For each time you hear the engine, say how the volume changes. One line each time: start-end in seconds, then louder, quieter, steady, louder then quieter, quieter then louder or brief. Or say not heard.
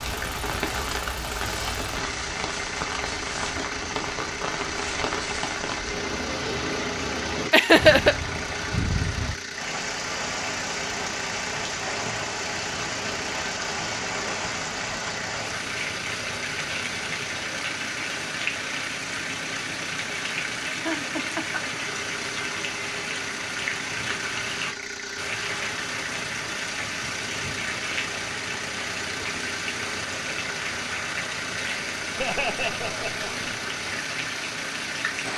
0.0-35.3 steady.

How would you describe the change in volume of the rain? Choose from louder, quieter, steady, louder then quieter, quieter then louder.
steady.